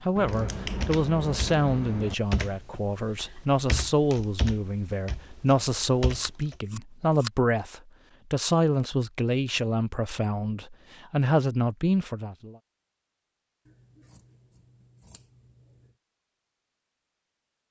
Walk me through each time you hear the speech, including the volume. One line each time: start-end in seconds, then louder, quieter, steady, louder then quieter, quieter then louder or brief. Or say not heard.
0.0-12.6 steady.